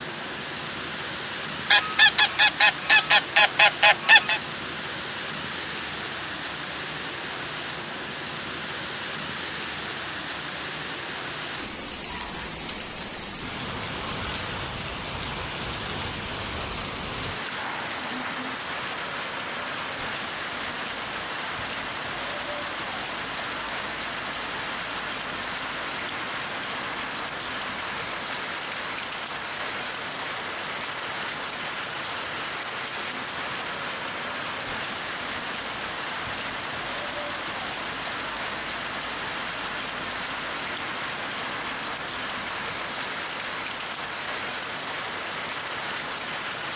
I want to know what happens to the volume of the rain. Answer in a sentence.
The volume of the rain stays about the same.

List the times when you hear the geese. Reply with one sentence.
You can hear the geese from 1.7 to 4.4 s.